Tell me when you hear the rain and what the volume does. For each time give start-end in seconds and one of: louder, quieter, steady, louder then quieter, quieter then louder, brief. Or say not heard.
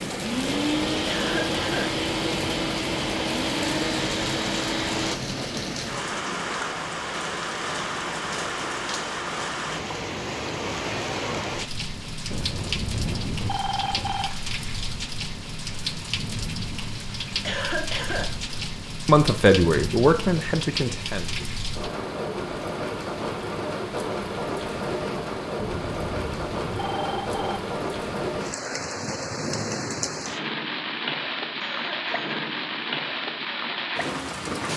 0.0-34.7 steady.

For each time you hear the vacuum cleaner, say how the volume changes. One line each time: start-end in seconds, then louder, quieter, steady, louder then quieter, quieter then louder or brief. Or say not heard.
0.0-5.2 steady.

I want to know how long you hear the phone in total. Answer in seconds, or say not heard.
4 s.